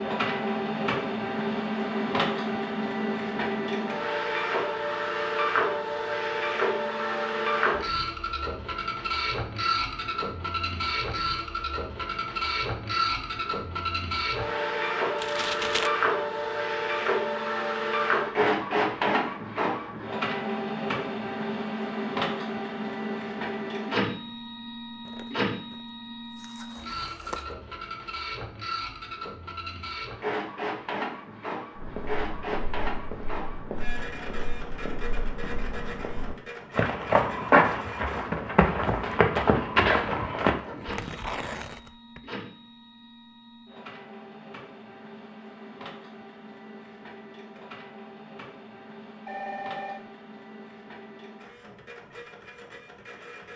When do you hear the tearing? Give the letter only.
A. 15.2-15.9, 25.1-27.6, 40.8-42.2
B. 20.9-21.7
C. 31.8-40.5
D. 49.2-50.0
A.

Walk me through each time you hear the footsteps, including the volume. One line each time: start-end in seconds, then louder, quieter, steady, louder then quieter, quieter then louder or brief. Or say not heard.
31.8-40.5 louder.